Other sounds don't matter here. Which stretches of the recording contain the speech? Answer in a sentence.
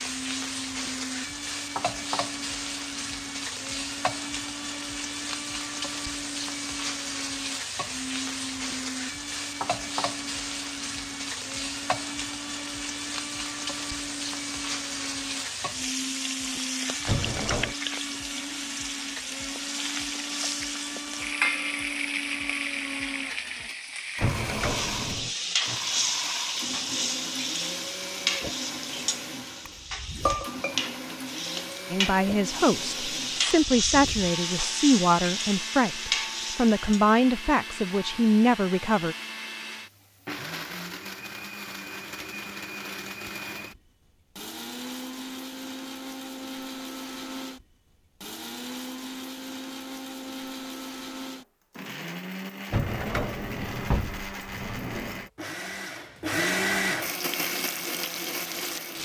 You can hear the speech from 31.9 to 39.1 s.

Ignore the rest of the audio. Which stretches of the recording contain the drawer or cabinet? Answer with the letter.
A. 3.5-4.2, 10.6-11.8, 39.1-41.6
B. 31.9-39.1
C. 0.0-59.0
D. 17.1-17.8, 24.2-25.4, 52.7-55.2
D.